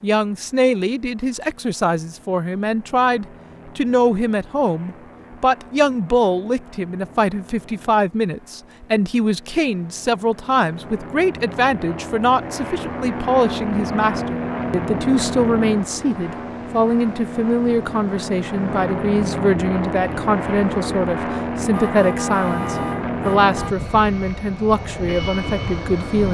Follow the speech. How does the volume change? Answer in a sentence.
The volume of the speech stays about the same.